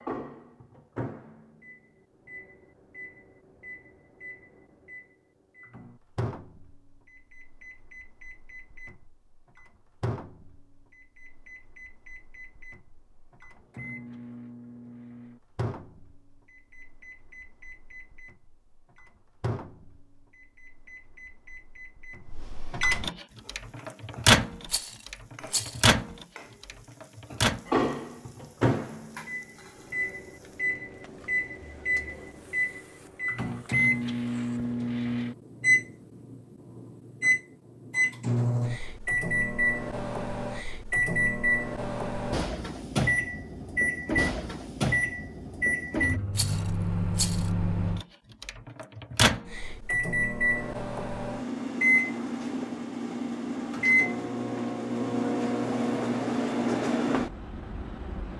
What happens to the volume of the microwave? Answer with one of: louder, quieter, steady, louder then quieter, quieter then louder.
louder.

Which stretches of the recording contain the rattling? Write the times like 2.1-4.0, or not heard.
24.6-25.9, 46.3-47.5.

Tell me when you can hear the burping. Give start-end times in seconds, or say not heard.
not heard.